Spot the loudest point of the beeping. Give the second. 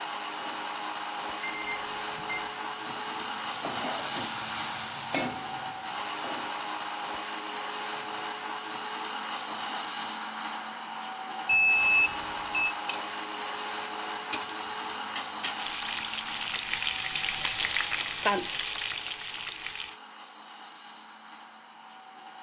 12 s.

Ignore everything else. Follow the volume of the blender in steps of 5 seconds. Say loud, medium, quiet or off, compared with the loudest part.
loud, loud, loud, medium, quiet.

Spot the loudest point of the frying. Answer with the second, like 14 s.
18 s.